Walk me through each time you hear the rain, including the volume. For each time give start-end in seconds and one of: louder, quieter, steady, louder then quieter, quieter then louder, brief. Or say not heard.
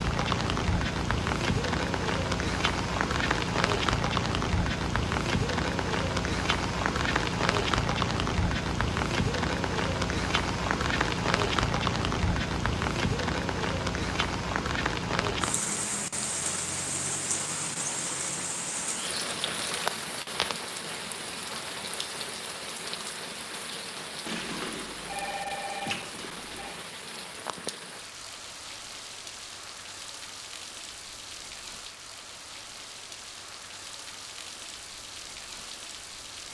0.0-36.4 quieter.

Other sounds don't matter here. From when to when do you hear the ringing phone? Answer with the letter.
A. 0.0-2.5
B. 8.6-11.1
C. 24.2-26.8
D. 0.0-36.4
C.